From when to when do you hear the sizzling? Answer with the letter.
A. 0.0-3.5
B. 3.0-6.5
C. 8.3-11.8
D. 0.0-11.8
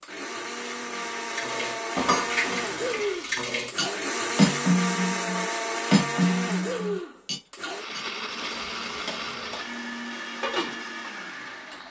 C.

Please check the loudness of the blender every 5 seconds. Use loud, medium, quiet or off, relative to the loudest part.
loud, loud, medium.